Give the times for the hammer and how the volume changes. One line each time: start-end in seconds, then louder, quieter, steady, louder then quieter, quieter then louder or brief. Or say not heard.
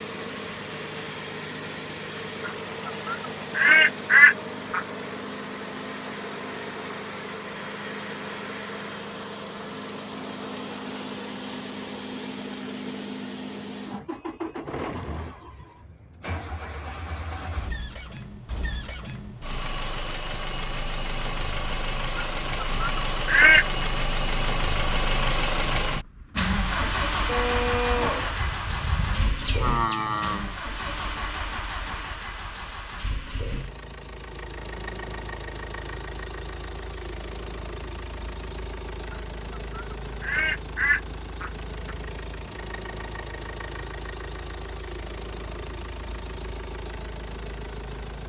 not heard.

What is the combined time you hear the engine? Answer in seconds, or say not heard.
48 s.